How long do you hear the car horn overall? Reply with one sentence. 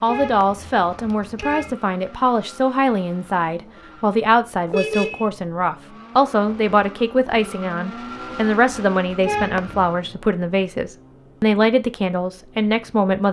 The car horn can be heard for 3 seconds in total.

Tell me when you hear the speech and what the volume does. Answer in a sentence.
You can hear the speech from 0.0 to 13.2 s, at a steady volume.